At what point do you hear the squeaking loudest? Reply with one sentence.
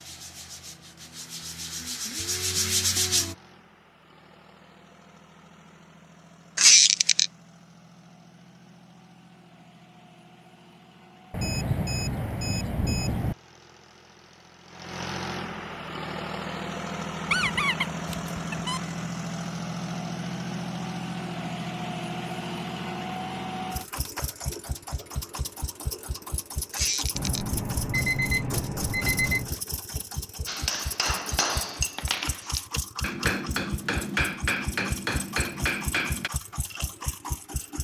The loudest moment of the squeaking is at 7 seconds.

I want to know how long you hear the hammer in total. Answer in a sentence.
You can hear the hammer for 6 seconds altogether.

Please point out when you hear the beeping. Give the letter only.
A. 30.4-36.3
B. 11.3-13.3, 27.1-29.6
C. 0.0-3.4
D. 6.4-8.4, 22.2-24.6
B.